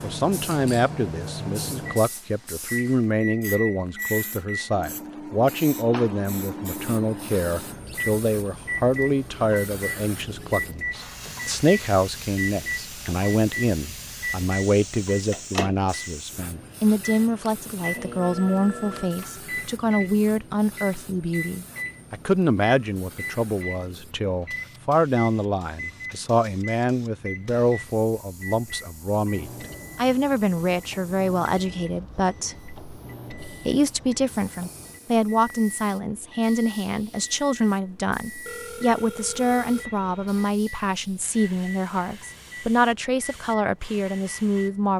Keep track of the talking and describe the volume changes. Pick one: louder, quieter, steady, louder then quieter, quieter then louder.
steady.